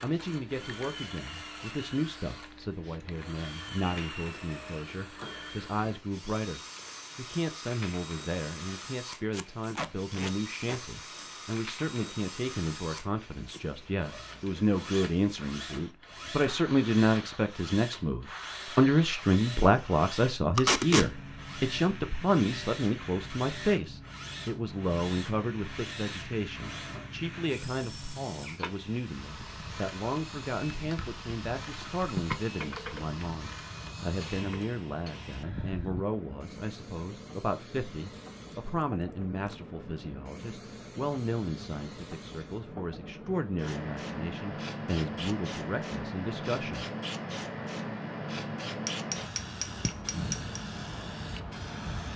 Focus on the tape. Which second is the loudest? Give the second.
21 s.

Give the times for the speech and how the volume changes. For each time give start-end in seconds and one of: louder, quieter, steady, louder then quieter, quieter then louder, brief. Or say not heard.
0.0-46.9 louder then quieter.